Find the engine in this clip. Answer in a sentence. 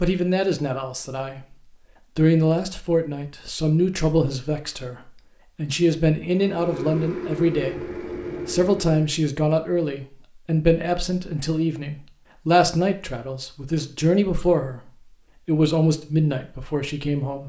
You can hear the engine from 6.2 to 9.1 s.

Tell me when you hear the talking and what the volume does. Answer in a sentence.
The talking can be heard briefly from 0.0 to 1.6 s; and from 2.1 to 17.4 s, at a steady volume.